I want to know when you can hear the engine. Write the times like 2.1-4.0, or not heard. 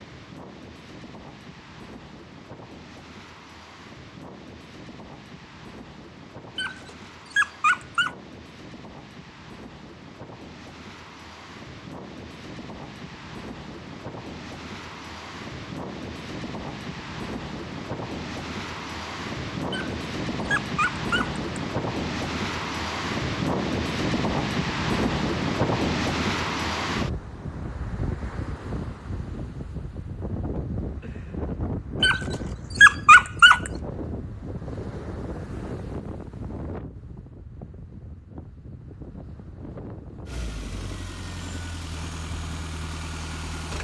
40.2-43.7.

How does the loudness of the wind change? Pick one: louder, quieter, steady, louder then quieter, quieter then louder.
louder then quieter.